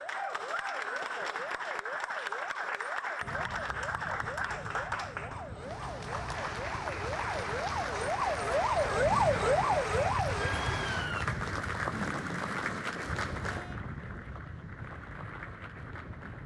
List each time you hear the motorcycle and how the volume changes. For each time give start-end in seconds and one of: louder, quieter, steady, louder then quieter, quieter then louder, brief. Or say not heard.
not heard.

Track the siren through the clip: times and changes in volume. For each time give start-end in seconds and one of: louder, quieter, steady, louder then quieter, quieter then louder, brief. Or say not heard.
0.0-11.2 louder.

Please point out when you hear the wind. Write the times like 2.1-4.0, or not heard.
3.2-16.4.